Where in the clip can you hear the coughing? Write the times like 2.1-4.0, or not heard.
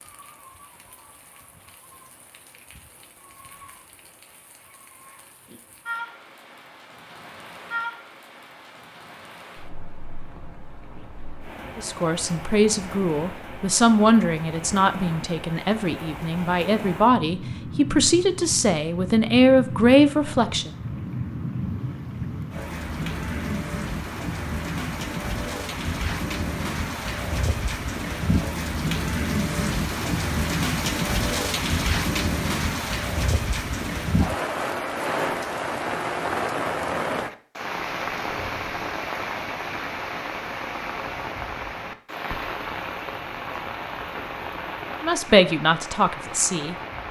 not heard.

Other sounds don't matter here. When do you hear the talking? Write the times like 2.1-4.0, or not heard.
11.8-20.8, 45.0-47.0.